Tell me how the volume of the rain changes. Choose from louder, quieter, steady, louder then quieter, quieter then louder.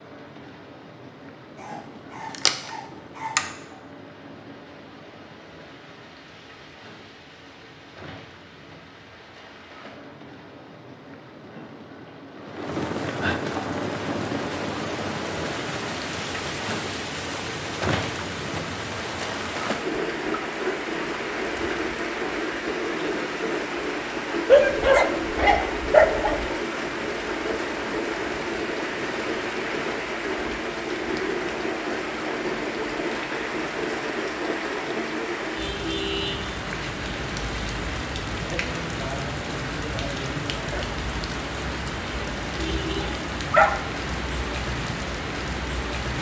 louder.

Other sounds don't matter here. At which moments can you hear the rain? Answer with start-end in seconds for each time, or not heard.
0.0-46.1.